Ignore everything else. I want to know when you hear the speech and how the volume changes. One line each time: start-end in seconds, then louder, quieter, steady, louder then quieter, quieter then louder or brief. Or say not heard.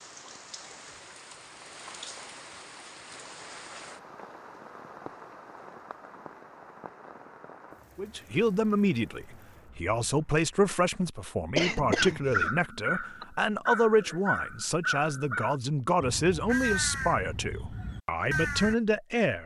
8.0-19.4 steady.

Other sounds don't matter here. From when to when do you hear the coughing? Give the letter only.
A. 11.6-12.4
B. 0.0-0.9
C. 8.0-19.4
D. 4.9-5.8
A.